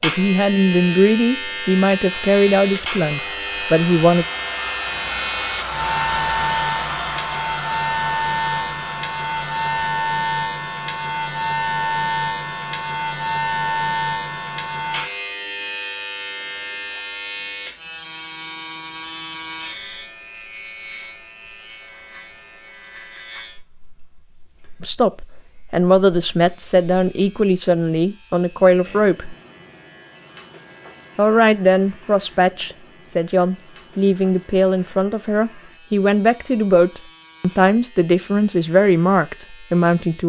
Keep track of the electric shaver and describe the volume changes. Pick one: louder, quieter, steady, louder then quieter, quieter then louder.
quieter.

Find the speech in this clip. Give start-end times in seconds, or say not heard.
0.0-4.2, 24.8-29.4, 31.1-40.2.